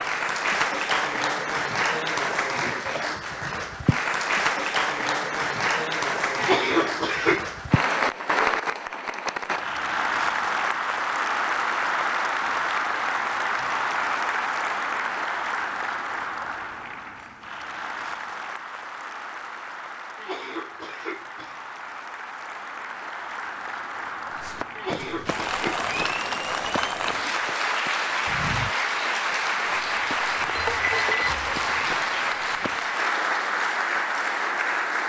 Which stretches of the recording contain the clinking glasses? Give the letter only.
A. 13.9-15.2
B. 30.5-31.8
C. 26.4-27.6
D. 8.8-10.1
B.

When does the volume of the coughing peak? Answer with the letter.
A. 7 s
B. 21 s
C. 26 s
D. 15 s
A.